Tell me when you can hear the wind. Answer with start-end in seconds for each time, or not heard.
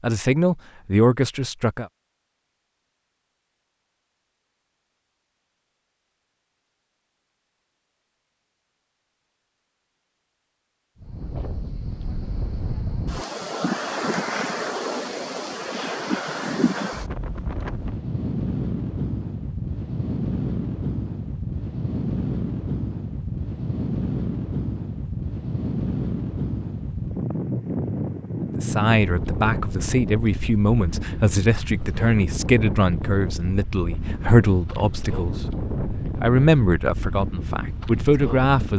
11.0-38.7.